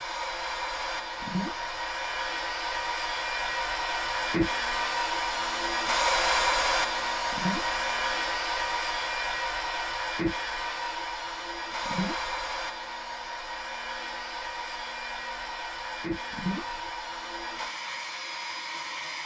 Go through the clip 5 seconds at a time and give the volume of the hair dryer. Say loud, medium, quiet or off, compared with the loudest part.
loud, loud, medium, medium.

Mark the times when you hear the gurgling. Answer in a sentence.
You can hear the gurgling from 1.2 to 1.7 s, from 7.3 to 7.8 s, from 11.8 to 12.3 s and from 16.3 to 16.8 s.